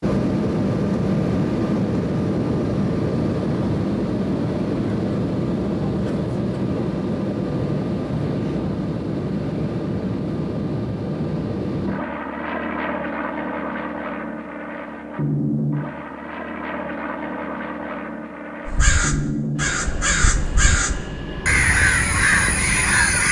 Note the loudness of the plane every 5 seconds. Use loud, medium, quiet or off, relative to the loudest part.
loud, loud, medium, medium, medium.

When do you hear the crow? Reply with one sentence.
The crow can be heard from 18.6 to 23.2 s.